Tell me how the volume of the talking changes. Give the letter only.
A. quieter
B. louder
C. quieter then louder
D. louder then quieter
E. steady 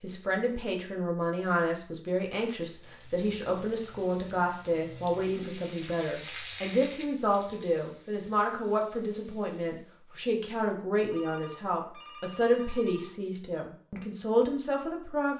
E.